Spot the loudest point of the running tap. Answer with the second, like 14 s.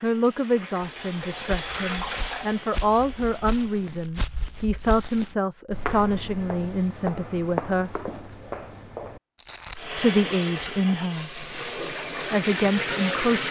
13 s.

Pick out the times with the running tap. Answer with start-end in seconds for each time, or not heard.
0.0-3.9, 9.8-13.4.